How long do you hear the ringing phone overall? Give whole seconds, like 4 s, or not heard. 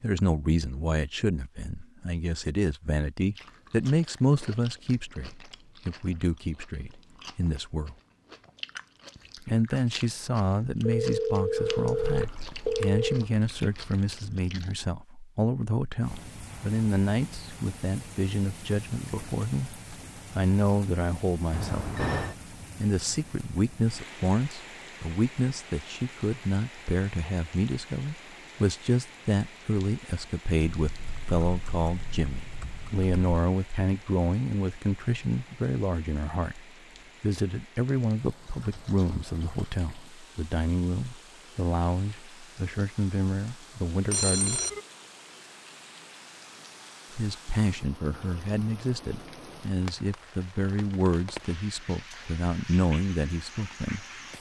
4 s.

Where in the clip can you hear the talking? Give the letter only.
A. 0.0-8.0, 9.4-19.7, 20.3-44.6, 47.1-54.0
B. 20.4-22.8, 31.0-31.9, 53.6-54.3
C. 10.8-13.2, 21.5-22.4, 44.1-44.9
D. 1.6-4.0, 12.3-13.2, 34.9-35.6
A.